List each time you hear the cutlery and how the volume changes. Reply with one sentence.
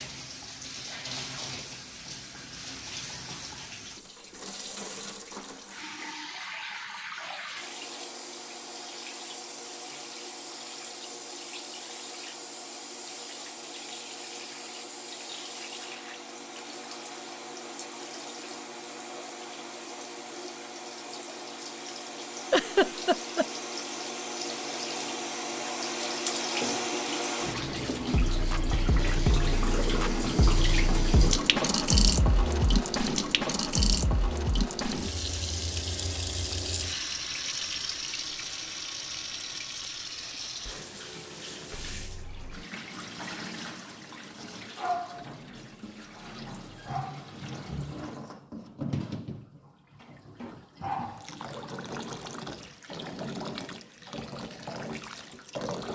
The cutlery can't be heard in this clip.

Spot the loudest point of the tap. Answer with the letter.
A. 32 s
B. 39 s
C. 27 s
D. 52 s
A.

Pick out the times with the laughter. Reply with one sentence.
The laughter can be heard from 22.5 to 23.4 s.